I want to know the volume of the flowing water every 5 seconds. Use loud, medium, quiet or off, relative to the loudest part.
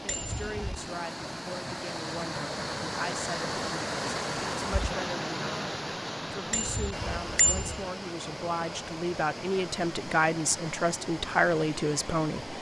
loud, loud, medium.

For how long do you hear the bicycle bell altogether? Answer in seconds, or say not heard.
2 s.